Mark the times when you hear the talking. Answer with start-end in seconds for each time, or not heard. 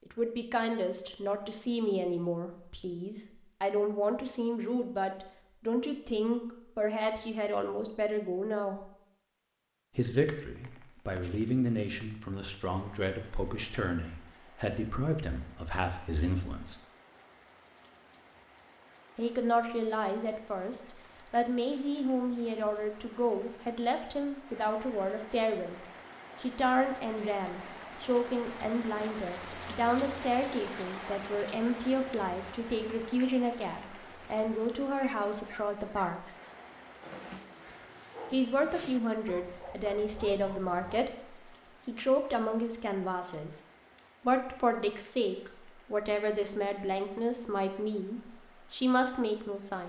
0.1-8.9, 9.9-16.8, 19.1-25.8, 26.4-36.4, 38.3-43.5, 44.2-49.8.